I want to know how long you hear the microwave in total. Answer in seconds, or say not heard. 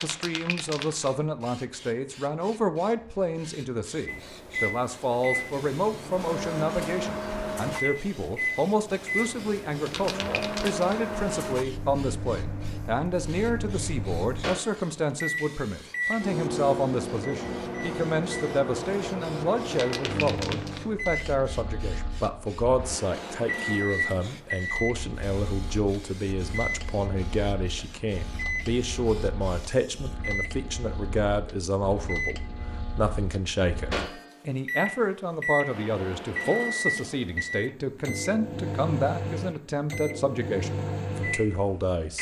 38 s.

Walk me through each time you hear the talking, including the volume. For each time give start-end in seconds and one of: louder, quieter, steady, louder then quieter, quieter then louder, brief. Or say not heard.
0.0-42.1 steady.